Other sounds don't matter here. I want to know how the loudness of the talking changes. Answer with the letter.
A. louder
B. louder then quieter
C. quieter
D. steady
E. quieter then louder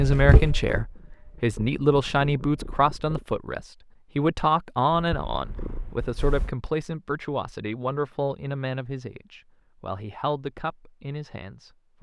C.